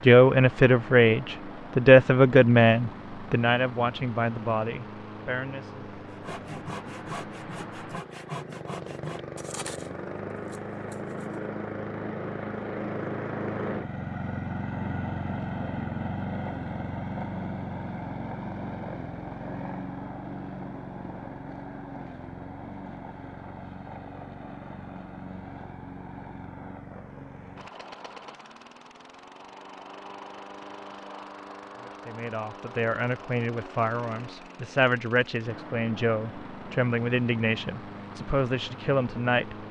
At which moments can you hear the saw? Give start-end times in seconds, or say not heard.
6.1-11.4.